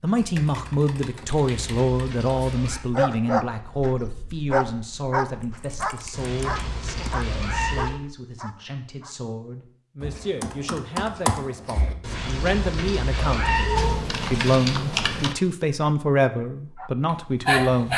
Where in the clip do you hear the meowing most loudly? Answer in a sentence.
The loudest moment of the meowing is at 14 seconds.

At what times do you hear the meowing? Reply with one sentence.
You can hear the meowing from 1.4 to 2.8 s, from 6.1 to 8.0 s and from 12.0 to 14.0 s.